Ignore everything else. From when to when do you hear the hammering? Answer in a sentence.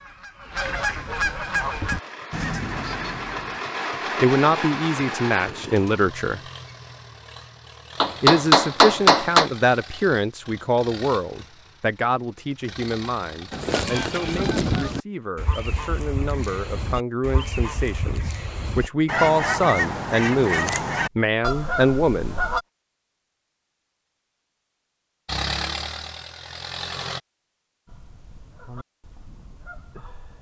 The hammering can be heard from 8.0 to 9.5 s.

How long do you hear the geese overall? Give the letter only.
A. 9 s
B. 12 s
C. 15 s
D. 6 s
C.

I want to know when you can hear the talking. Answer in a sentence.
You can hear the talking from 4.2 to 6.4 s and from 8.2 to 22.4 s.